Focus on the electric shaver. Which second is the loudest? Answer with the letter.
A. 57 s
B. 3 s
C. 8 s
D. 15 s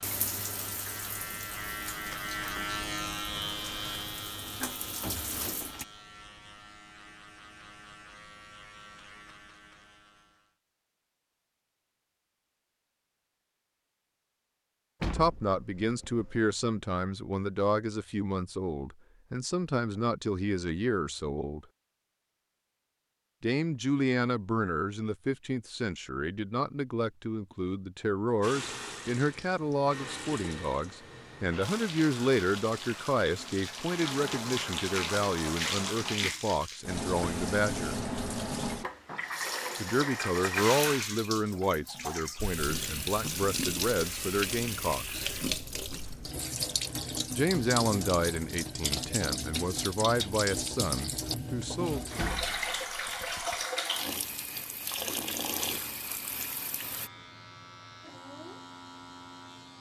B.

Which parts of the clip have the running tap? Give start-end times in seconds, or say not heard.
0.0-5.8, 28.4-57.1.